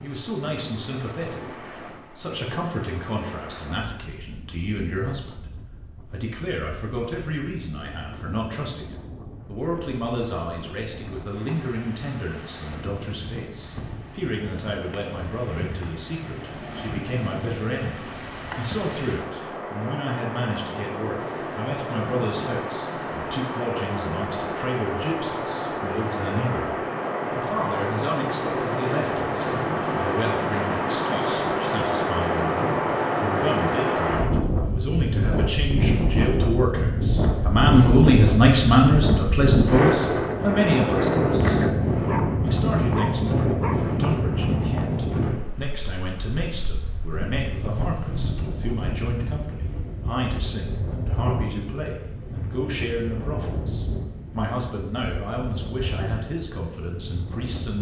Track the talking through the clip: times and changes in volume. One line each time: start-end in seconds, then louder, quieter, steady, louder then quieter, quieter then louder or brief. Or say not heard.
0.0-57.7 louder then quieter.